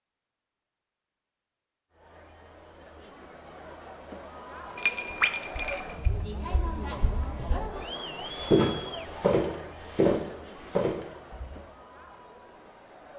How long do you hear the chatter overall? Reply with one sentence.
The chatter can be heard for 11 seconds in total.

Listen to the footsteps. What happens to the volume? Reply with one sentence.
The loudness of the footsteps goes up.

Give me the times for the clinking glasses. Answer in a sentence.
The clinking glasses can be heard from 4.8 to 6.1 s.